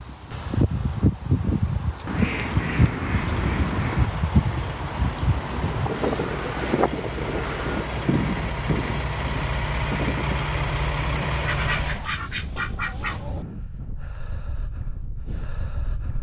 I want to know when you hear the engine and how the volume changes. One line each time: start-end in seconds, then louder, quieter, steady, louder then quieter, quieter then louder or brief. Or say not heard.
3.2-12.1 louder.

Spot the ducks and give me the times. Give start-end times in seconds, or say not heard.
2.0-4.1, 11.4-13.4.